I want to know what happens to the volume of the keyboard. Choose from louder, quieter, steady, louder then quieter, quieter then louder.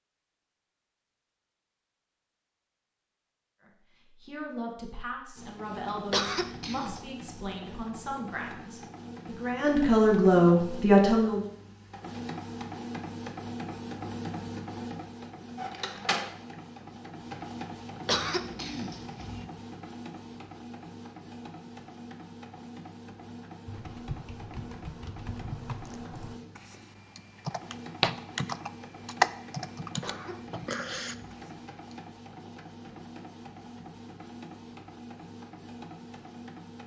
louder then quieter.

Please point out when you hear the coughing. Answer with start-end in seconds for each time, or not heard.
6.1-7.0, 18.1-19.4, 30.0-31.4.